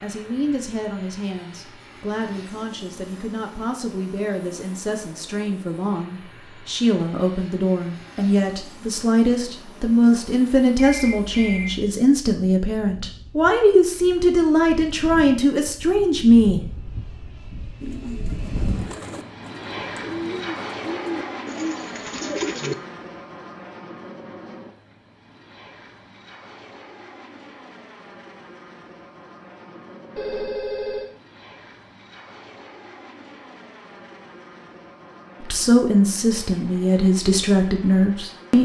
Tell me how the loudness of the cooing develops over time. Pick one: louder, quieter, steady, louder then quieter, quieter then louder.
louder.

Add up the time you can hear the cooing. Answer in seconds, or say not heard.
5 s.